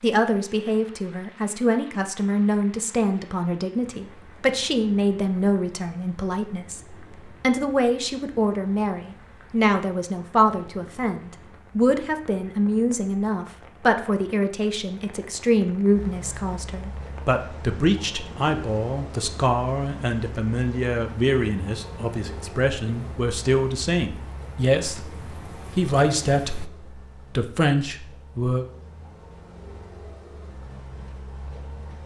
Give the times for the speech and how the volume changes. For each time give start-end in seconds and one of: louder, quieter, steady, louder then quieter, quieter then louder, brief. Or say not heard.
0.0-25.1 steady
25.8-28.6 brief.